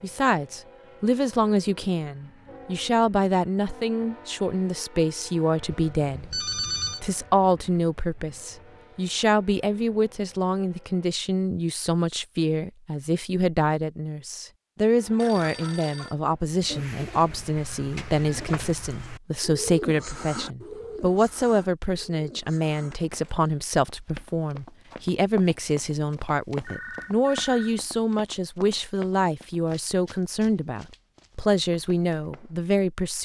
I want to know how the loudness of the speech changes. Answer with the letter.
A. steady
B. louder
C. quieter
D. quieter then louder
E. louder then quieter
A.